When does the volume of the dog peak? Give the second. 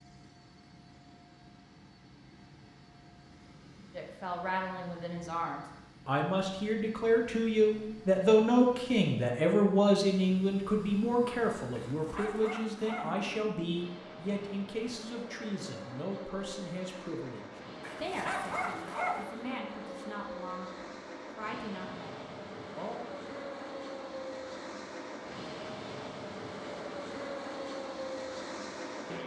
19 s.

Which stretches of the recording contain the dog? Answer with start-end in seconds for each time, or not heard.
11.7-13.2, 17.8-19.2.